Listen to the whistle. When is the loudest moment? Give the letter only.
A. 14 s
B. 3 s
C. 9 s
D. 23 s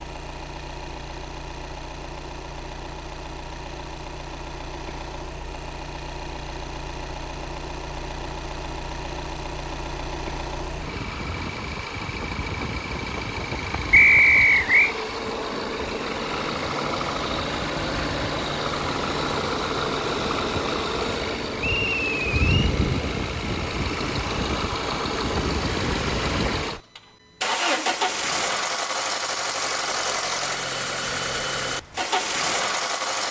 A.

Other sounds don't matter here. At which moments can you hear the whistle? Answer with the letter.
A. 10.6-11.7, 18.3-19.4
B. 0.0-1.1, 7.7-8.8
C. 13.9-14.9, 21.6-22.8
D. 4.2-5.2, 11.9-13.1
C.